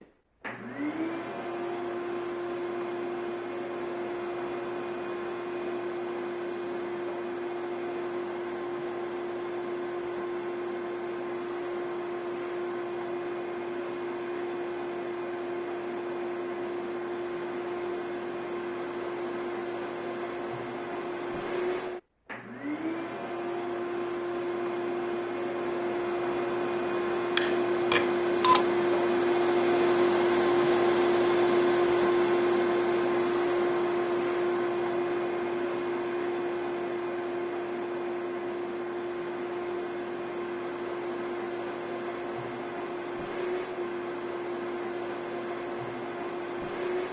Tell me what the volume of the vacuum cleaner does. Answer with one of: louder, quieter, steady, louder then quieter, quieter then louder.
louder then quieter.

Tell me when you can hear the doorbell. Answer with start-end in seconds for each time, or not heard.
27.4-28.6.